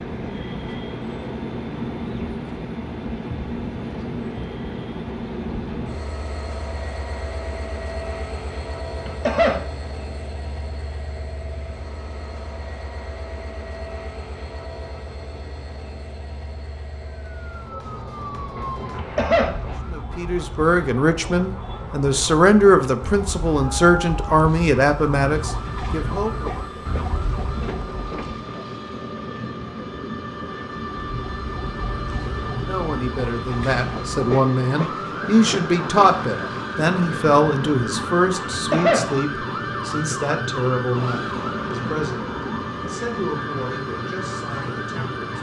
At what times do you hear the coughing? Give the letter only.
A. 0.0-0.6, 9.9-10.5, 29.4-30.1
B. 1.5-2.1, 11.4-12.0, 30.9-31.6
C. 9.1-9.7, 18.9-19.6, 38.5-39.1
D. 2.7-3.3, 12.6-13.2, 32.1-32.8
C.